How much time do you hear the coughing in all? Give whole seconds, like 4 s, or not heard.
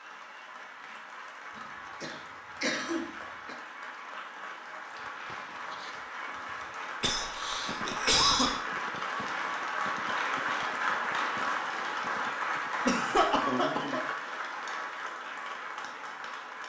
5 s.